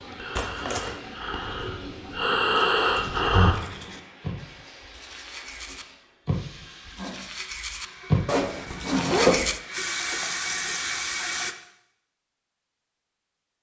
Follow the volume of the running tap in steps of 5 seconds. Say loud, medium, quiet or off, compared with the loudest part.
quiet, medium, loud.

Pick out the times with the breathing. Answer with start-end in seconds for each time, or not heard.
0.0-3.5.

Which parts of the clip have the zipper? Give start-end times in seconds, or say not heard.
0.3-0.9, 8.2-9.4.